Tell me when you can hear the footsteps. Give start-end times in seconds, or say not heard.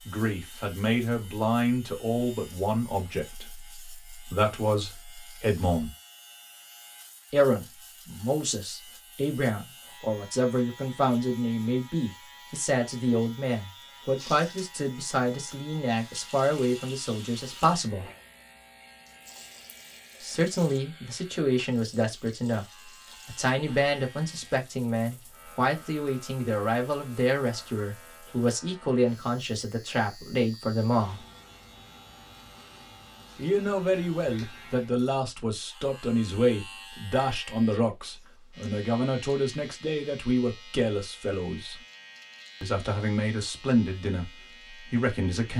not heard.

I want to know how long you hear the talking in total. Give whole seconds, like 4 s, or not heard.
38 s.